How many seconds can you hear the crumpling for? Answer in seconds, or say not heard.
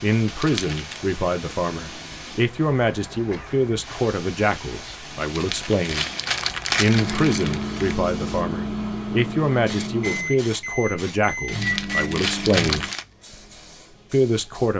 5 s.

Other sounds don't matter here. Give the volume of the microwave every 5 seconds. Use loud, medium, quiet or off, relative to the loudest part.
off, loud, loud.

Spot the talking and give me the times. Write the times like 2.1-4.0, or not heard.
0.0-6.0, 6.8-12.8, 14.1-14.7.